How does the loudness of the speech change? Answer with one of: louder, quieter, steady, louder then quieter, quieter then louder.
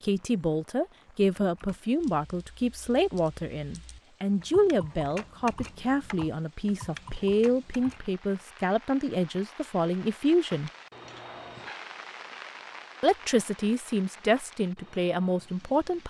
steady.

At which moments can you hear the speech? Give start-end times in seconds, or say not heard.
0.0-10.7, 13.0-16.0.